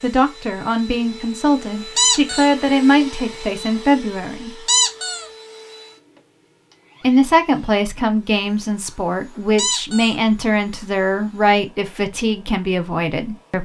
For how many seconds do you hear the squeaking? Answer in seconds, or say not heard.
2 s.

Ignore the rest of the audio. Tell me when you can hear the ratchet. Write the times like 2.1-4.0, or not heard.
not heard.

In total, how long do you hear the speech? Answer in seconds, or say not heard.
11 s.